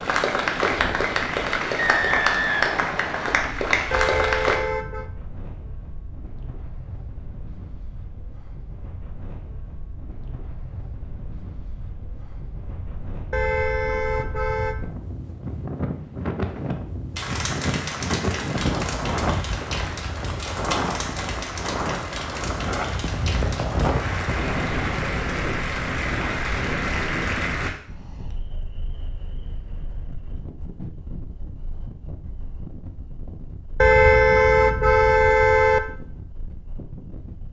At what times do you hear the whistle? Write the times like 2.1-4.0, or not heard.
1.8-3.5.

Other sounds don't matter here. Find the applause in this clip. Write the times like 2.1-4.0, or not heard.
0.0-4.6, 17.1-27.7.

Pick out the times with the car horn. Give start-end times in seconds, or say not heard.
3.9-5.0, 13.3-14.8, 33.8-35.8.